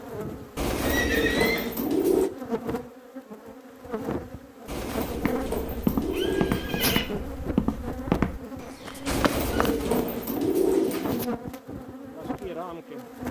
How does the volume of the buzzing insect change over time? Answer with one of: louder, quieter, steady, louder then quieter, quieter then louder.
steady.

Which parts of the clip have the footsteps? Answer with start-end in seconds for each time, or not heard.
5.0-10.4.